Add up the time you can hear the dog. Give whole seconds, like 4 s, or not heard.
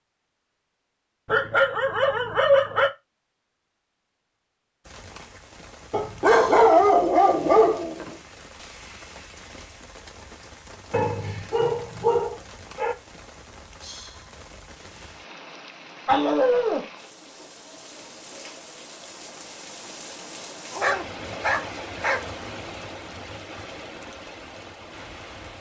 8 s.